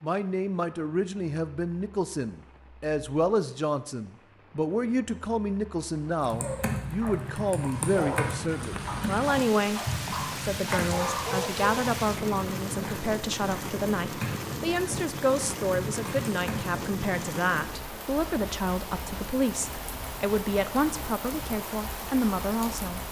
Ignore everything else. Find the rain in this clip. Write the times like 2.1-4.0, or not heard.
0.0-23.0.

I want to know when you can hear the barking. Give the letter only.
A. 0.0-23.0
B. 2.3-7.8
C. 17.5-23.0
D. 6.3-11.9
D.